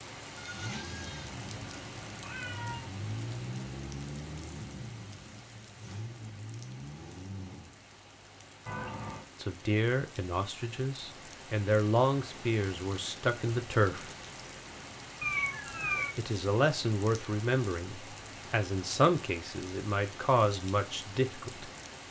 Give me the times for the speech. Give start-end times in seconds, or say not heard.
9.4-14.1, 16.1-21.7.